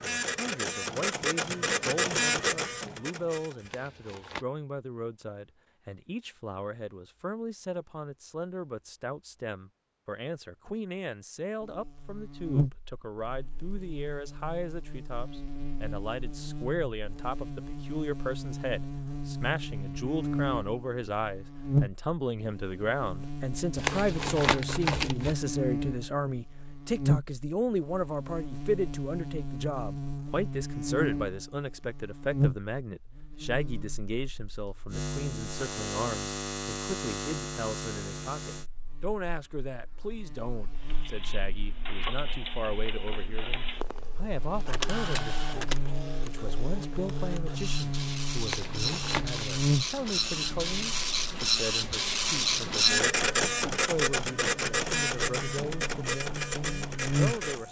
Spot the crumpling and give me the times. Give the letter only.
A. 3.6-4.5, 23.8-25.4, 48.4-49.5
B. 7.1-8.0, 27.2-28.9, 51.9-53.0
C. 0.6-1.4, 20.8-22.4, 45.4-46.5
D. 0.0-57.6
A.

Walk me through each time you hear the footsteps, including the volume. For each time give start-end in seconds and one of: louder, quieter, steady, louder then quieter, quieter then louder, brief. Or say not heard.
not heard.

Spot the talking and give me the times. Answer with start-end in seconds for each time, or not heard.
0.0-57.6.